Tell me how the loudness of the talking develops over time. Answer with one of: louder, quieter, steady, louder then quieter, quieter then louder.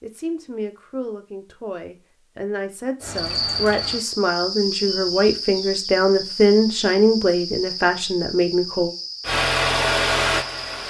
louder.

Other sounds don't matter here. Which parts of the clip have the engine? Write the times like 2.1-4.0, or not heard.
9.2-10.8.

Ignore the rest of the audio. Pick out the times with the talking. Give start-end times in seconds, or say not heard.
0.0-8.9.